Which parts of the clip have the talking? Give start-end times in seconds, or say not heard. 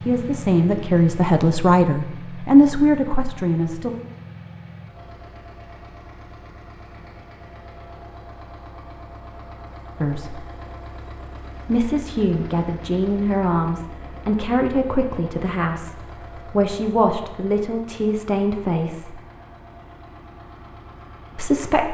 0.0-3.9, 10.0-10.4, 11.7-19.2, 21.4-21.8.